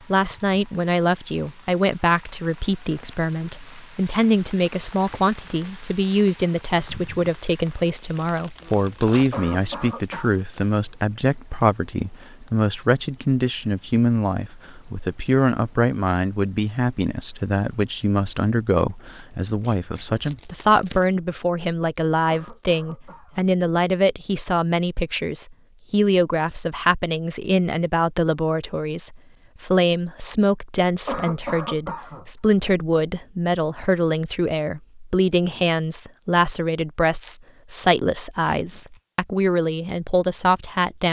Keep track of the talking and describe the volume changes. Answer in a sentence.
The volume of the talking stays about the same.